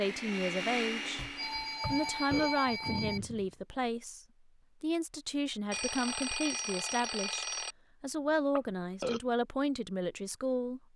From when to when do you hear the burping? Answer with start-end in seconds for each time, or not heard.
1.8-3.5, 8.6-9.2.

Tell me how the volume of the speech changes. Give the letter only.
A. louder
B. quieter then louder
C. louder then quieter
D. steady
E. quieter
D.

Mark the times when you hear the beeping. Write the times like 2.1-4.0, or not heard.
1.1-3.2, 5.7-7.8.